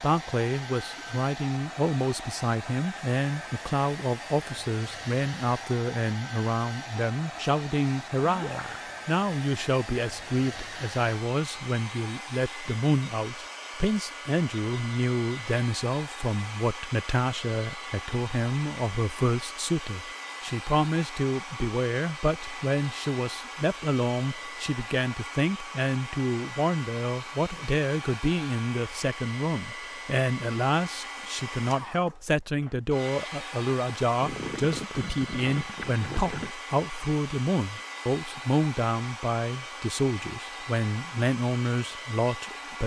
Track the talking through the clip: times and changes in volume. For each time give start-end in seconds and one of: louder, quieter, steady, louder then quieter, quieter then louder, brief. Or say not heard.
0.0-42.8 steady.